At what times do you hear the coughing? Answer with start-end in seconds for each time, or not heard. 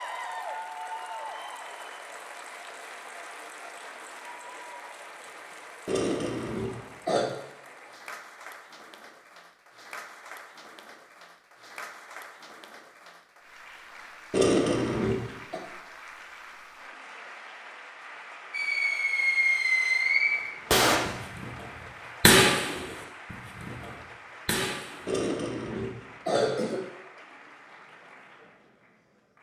5.8-7.3, 14.3-15.6, 25.1-26.8.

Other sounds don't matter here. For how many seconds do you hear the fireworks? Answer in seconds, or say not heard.
7 s.